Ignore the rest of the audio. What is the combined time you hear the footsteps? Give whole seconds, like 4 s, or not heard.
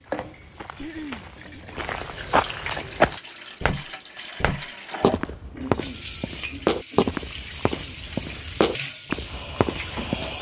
10 s.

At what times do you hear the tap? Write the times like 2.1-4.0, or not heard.
0.0-10.3.